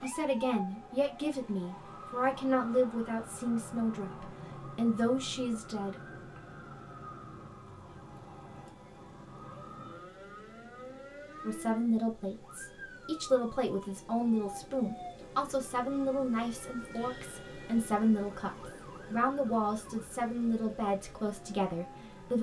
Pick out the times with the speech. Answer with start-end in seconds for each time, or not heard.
0.0-6.0, 11.4-22.3.